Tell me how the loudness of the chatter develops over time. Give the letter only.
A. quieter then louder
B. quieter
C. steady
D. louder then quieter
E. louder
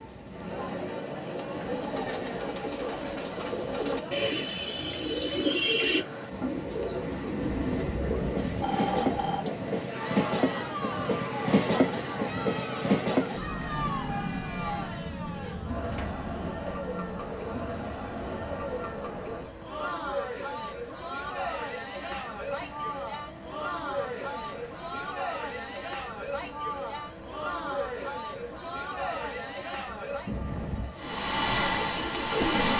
C.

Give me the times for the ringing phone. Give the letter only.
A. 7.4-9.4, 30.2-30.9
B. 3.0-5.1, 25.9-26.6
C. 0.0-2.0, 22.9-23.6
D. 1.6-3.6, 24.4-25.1
A.